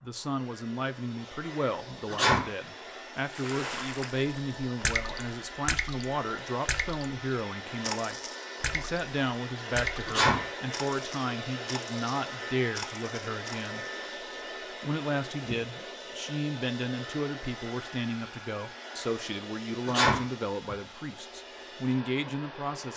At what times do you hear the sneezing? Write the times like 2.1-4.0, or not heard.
2.0-2.5, 10.1-10.5, 19.9-20.8.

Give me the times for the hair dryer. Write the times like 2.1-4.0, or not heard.
0.0-22.9.